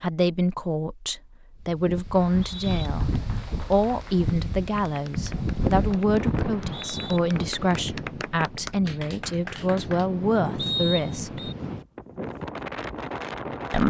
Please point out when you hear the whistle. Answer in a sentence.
The whistle can be heard from 2.1 to 2.9 s, from 6.4 to 7.2 s and from 10.6 to 11.6 s.